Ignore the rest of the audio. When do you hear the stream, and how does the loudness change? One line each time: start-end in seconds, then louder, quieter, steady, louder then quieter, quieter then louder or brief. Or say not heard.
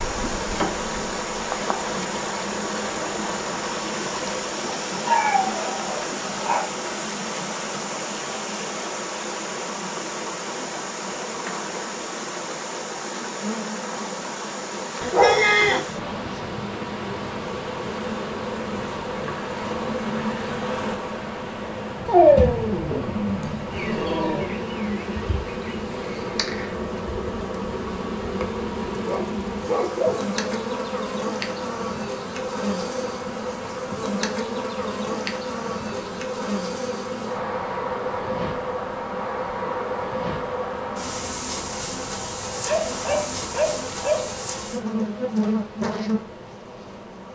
0.0-47.2 quieter.